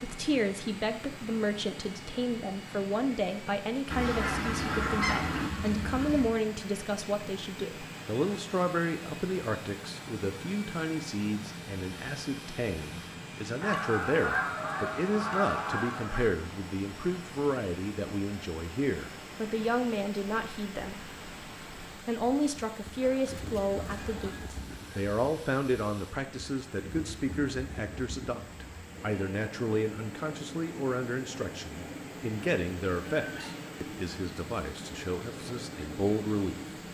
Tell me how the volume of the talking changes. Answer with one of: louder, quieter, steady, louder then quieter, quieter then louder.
steady.